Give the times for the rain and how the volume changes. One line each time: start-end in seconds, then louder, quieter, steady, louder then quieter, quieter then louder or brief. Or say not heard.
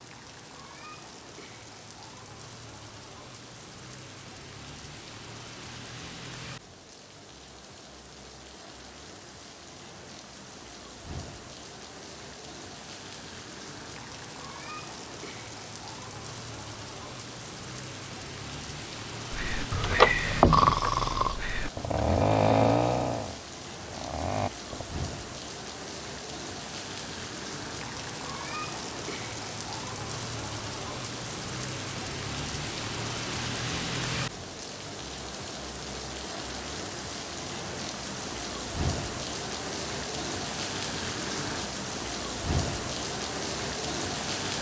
0.0-44.5 louder.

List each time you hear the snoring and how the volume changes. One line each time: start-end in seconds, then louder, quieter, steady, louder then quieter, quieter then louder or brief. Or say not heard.
19.3-24.9 quieter.